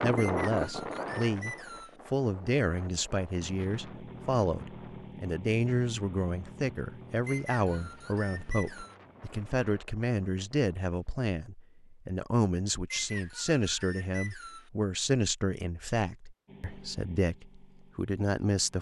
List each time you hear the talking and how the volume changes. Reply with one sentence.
You can hear the talking from 0.0 to 18.7 s, at a steady volume.